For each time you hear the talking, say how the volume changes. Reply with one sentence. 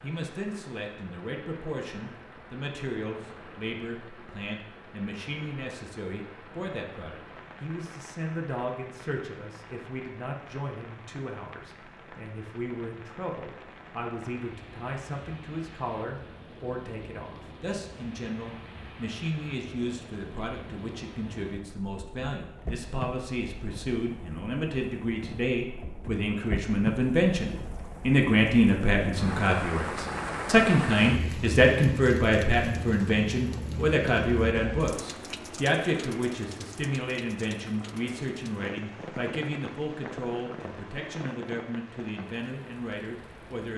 The talking can be heard from 0.0 to 43.7 s, getting louder then quieter.